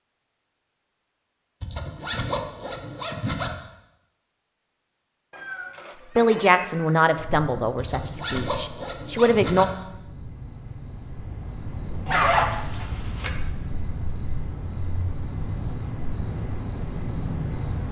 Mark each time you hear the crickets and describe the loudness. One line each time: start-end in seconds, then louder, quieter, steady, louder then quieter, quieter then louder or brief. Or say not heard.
7.2-17.8 louder.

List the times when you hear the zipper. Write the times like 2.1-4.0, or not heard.
1.6-3.5, 7.8-9.7, 12.1-13.3.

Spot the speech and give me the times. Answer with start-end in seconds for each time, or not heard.
6.2-9.7.